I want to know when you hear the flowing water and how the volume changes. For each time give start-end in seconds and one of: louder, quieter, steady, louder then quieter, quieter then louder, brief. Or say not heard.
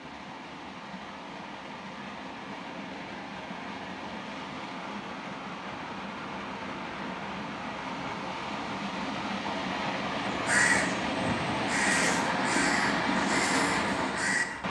0.0-14.6 louder.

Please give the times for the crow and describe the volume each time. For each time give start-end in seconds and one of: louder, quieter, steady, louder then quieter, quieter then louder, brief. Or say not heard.
10.2-14.6 quieter.